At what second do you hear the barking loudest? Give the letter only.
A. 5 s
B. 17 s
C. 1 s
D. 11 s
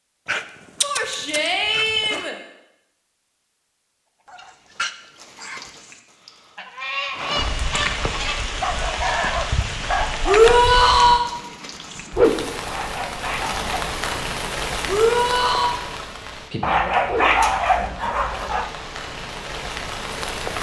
B.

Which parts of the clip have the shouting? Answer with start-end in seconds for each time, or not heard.
0.8-2.4, 10.2-11.3, 14.8-15.7.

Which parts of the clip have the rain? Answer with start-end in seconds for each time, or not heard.
7.1-20.5.